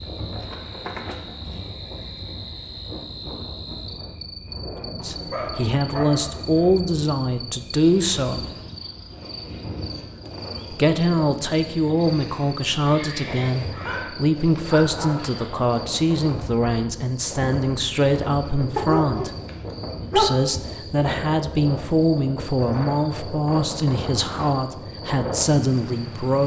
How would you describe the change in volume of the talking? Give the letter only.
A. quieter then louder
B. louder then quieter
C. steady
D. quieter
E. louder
C.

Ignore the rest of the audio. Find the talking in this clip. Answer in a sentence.
You can hear the talking from 4.8 to 8.4 s, from 10.7 to 19.3 s and from 20.1 to 26.4 s.